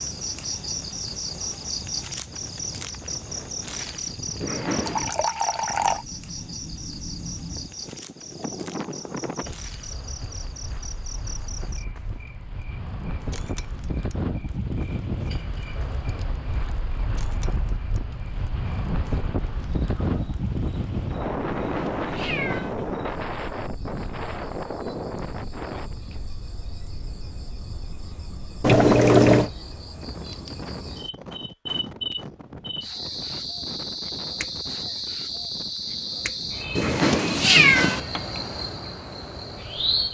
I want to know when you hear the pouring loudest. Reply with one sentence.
The volume of the pouring peaks at 29 seconds.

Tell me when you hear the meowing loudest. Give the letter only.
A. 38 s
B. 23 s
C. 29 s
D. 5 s
A.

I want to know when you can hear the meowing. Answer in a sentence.
The meowing can be heard from 4.4 to 5.1 s, from 21.5 to 22.8 s and from 36.8 to 38.0 s.